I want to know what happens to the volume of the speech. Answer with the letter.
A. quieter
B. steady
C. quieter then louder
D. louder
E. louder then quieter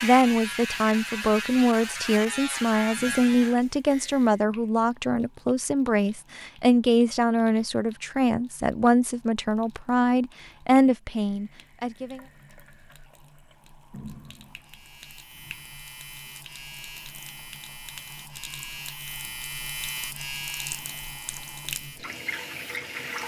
B.